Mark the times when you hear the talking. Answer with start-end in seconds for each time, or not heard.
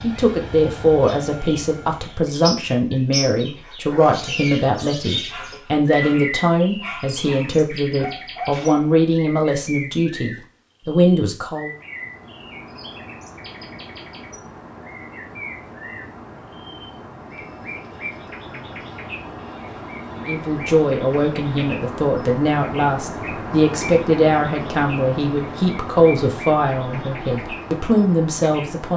0.0-11.7, 20.1-28.9.